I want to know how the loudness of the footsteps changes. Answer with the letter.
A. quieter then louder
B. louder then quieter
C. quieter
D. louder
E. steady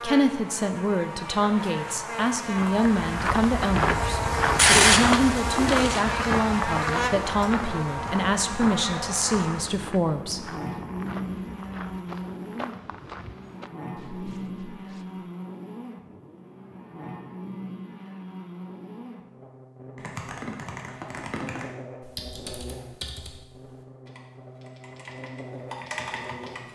C.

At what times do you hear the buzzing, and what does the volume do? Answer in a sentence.
The buzzing can be heard from 0.0 to 26.7 s, getting quieter.